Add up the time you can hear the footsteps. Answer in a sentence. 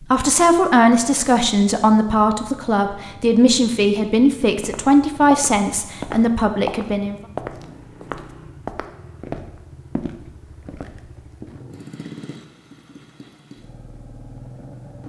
The footsteps can be heard for 7 seconds in total.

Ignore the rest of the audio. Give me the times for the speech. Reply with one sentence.
You can hear the speech from 0.0 to 7.2 s.